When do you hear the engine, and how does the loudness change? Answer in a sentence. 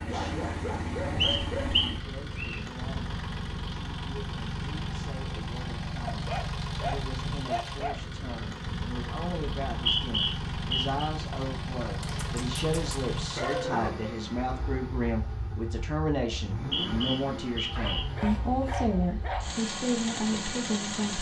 The engine can be heard from 0.0 to 21.1 s, at a steady volume.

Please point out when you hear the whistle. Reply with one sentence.
You can hear the whistle from 1.2 to 2.6 s, from 9.6 to 11.1 s and from 16.3 to 18.1 s.